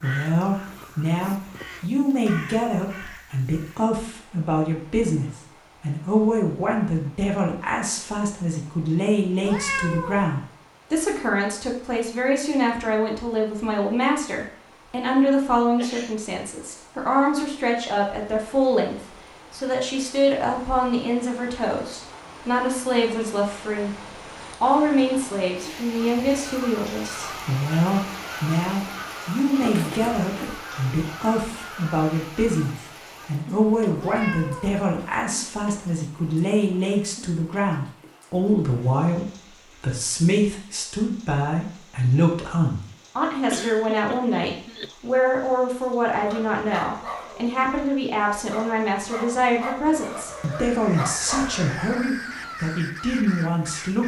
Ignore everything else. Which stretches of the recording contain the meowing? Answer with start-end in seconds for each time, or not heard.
9.4-10.2, 34.0-34.8.